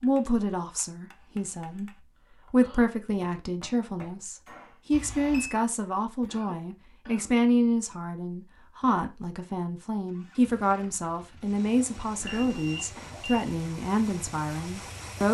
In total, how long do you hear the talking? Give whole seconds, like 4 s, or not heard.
15 s.